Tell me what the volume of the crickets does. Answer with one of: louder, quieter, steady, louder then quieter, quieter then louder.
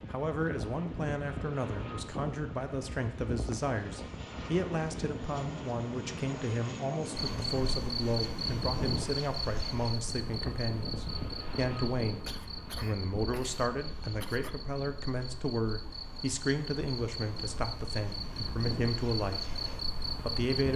quieter then louder.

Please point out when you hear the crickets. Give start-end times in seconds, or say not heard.
7.2-20.7.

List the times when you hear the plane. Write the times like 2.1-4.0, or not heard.
0.0-20.7.